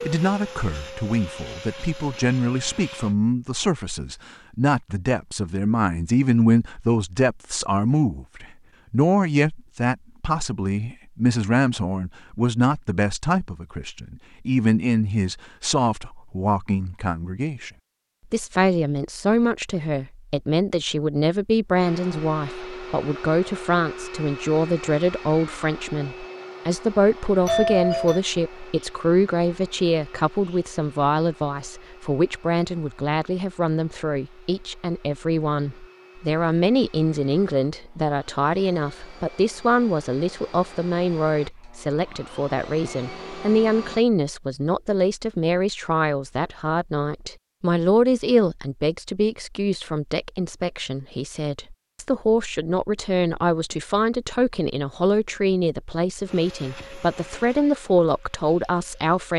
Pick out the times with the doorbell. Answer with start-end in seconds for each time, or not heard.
27.4-28.2.